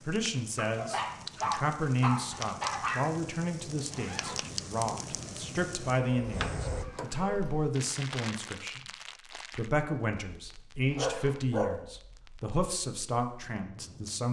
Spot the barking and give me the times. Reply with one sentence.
The barking can be heard from 0.6 to 3.0 s, from 6.0 to 7.7 s and from 10.9 to 11.7 s.